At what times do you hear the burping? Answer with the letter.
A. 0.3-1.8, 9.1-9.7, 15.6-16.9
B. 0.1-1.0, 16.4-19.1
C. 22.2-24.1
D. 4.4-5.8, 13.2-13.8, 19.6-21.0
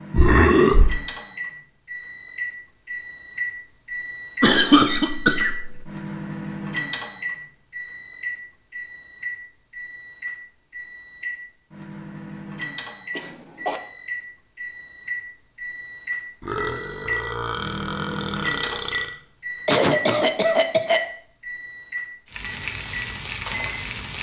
B.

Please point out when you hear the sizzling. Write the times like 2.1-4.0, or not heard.
22.2-24.1.